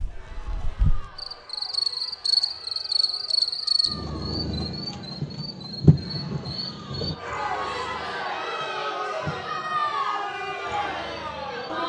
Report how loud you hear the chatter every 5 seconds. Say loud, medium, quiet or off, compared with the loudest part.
quiet, loud, loud.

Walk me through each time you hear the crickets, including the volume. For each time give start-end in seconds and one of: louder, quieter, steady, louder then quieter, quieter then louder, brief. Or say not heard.
0.0-11.8 quieter.